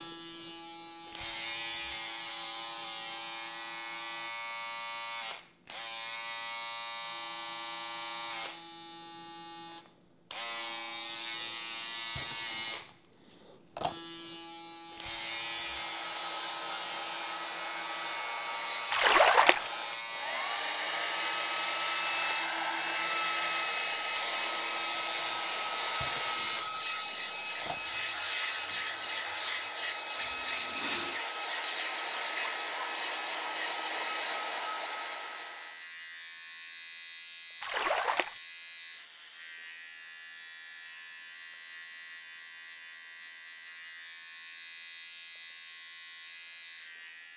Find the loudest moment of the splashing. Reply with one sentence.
The loudest moment of the splashing is at 19 seconds.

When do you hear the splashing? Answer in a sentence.
You can hear the splashing from 18.9 to 19.7 s and from 37.6 to 38.4 s.